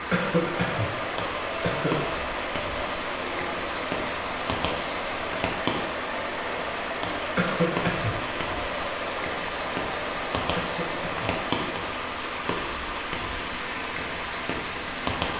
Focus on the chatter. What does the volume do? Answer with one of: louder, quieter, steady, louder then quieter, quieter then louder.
steady.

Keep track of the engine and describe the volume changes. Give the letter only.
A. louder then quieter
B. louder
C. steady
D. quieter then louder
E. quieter
C.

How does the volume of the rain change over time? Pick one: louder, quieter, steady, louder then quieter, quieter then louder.
steady.